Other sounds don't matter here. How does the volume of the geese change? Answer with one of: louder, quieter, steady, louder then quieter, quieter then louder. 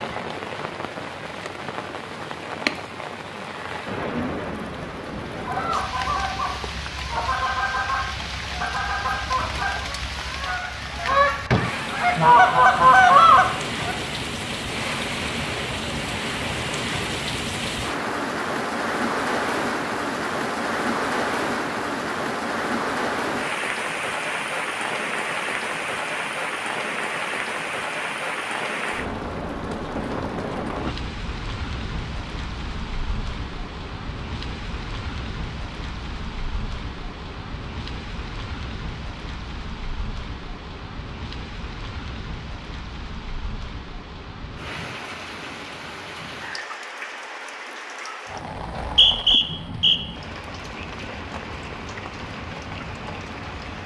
louder.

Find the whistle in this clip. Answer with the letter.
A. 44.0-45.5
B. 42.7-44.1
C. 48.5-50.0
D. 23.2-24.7
C.